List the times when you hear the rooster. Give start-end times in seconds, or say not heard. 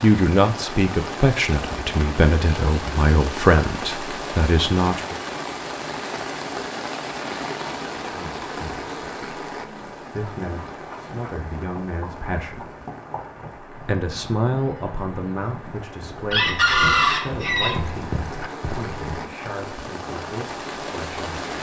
16.3-17.8.